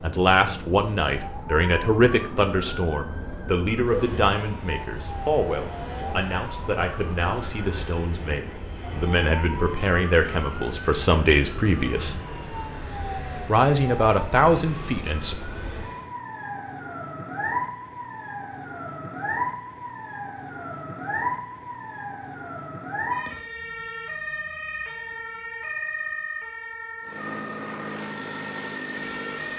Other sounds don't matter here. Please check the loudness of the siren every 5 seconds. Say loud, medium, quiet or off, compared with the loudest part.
medium, medium, medium, loud, loud, loud.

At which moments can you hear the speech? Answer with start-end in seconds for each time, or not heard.
0.0-12.2, 13.4-15.3.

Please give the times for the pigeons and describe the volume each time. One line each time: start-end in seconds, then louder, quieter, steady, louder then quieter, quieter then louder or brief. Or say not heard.
not heard.